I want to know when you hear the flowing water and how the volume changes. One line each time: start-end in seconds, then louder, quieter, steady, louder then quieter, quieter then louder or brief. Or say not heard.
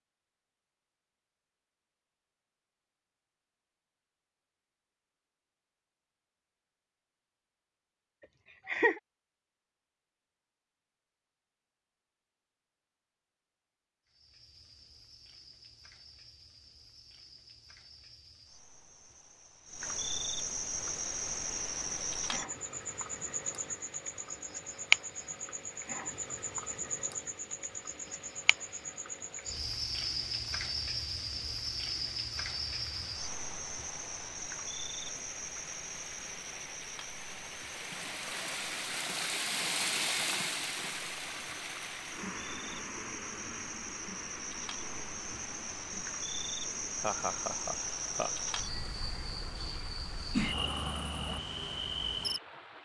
20.8-52.8 louder then quieter.